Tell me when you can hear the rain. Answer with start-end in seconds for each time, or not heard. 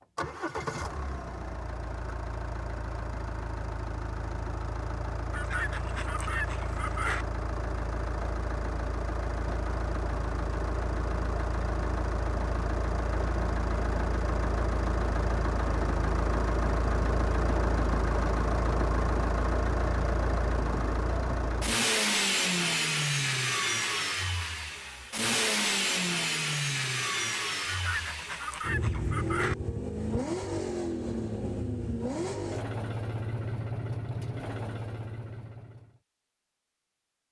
not heard.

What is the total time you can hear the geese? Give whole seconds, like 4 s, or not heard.
4 s.